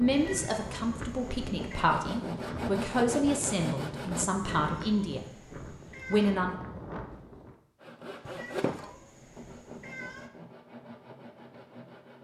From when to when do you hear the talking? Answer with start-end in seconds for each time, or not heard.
0.0-5.3, 6.0-6.5.